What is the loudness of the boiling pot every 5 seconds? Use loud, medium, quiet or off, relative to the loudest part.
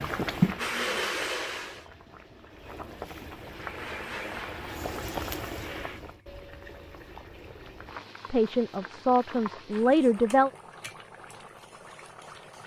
loud, medium, quiet.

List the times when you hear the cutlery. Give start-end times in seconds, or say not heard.
not heard.